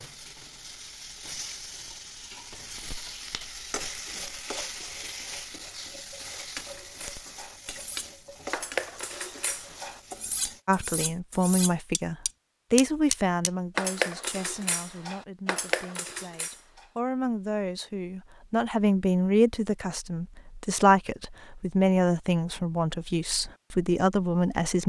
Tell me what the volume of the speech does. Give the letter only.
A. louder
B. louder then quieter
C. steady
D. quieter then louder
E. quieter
D.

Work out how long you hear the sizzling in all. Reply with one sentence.
The sizzling can be heard for 11 seconds in total.